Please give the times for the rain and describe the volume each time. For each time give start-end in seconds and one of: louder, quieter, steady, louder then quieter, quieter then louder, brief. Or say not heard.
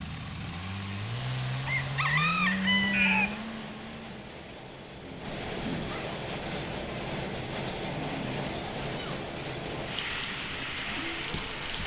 2.6-11.8 louder.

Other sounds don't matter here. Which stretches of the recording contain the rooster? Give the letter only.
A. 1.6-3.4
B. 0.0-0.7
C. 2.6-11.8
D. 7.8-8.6
A.